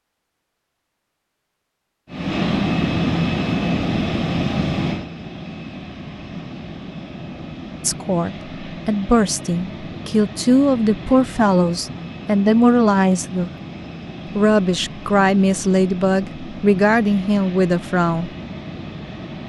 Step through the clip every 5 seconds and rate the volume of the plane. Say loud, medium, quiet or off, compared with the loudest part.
loud, quiet, quiet, quiet.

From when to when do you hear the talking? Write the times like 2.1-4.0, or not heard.
7.8-13.5, 14.3-18.3.